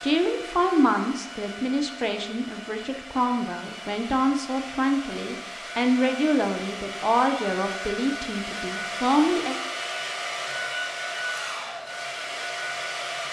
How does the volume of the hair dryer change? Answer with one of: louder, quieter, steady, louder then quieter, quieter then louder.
louder.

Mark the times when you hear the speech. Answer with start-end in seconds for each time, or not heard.
0.0-9.6.